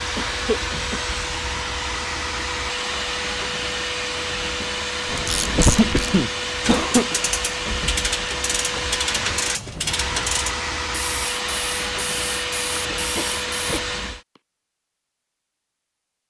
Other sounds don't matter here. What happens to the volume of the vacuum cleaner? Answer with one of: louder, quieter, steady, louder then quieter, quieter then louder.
steady.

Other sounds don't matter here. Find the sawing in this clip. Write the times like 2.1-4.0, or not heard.
not heard.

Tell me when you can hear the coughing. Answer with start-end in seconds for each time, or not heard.
0.1-1.1, 5.5-7.2, 12.7-13.9.